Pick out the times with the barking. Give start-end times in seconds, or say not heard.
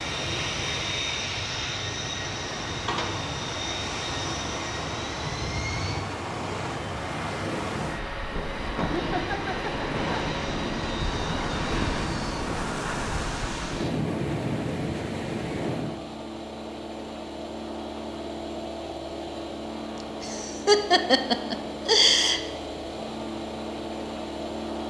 not heard.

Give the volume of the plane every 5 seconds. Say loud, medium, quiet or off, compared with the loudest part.
loud, loud, medium, loud, loud.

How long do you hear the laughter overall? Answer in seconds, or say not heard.
4 s.